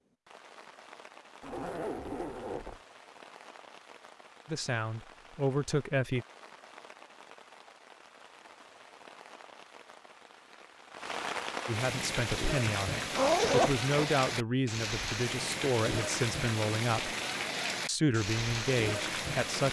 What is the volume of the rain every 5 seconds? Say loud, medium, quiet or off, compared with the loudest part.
quiet, quiet, loud, loud.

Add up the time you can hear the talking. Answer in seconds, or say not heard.
9 s.